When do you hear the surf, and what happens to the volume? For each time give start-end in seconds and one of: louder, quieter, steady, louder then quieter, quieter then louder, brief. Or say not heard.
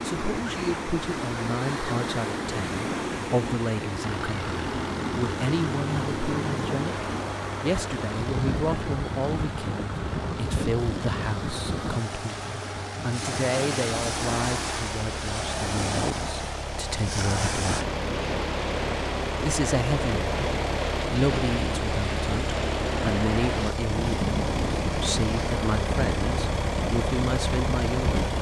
0.0-28.3 steady.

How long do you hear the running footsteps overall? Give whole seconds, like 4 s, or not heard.
not heard.